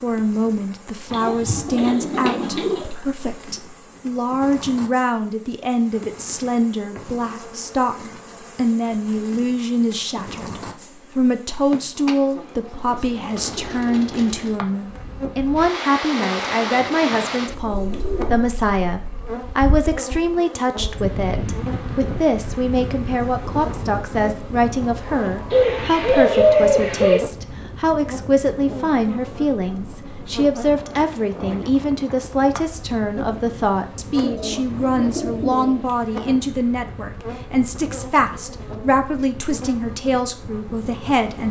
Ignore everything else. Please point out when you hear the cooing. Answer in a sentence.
The cooing can be heard from 1.1 to 2.9 s, from 12.8 to 14.6 s, from 16.7 to 18.5 s, from 25.5 to 27.2 s and from 34.2 to 35.9 s.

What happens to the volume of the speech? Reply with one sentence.
The volume of the speech stays about the same.